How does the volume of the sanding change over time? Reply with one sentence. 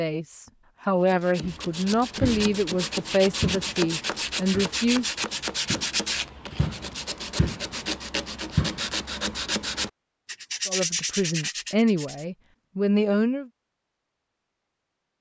The volume of the sanding stays about the same.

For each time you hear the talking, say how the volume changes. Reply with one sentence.
The talking can be heard from 0.0 to 5.1 s, at a steady volume; and briefly from 10.7 to 13.5 s.